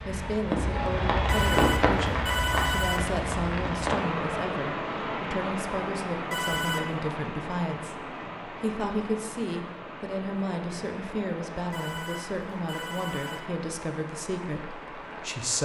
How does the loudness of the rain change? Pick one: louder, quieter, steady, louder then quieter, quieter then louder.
quieter.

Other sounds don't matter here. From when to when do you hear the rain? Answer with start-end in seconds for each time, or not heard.
0.0-15.6.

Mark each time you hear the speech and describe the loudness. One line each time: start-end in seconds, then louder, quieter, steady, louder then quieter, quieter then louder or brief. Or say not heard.
0.1-15.6 steady.